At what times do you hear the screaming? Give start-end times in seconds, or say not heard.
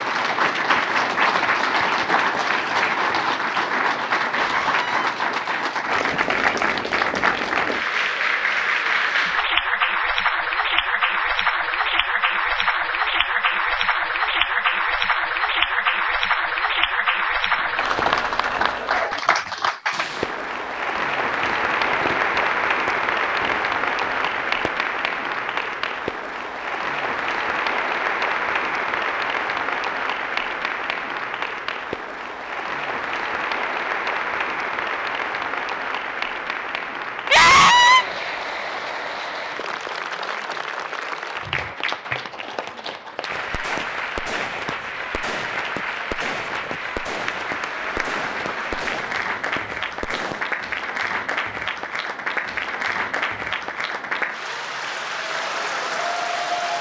4.3-5.1, 37.3-38.0.